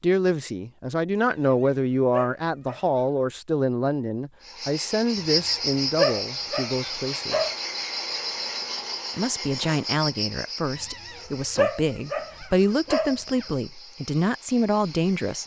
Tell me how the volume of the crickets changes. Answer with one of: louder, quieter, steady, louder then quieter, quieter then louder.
quieter.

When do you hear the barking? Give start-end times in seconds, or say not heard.
1.3-3.1, 5.2-7.5, 10.8-13.5.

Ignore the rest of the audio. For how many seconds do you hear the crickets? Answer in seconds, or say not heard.
11 s.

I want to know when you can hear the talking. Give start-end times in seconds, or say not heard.
0.0-7.4, 9.2-15.4.